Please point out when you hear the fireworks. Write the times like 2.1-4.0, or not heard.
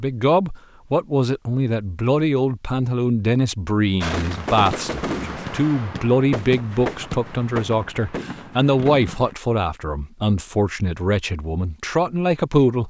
4.0-9.3.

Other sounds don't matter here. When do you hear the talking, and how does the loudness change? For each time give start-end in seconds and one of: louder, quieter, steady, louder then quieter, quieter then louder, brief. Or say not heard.
0.0-12.8 steady.